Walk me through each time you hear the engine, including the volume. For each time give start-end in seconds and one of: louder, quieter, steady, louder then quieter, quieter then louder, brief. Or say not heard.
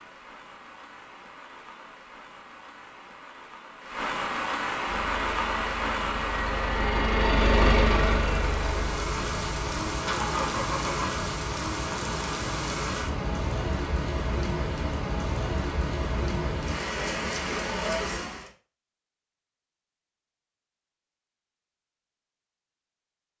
4.8-11.2 louder then quieter.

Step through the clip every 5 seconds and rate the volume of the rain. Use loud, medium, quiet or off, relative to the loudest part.
medium, loud, loud, loud, off.